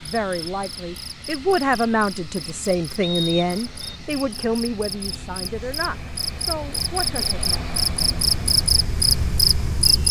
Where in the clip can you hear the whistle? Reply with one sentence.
The whistle can be heard from 3.0 to 4.0 s.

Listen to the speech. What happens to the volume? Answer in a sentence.
The loudness of the speech goes down.